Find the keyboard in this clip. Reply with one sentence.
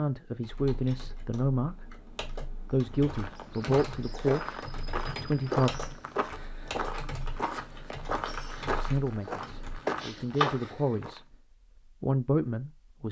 The keyboard can be heard from 0.4 to 10.8 s.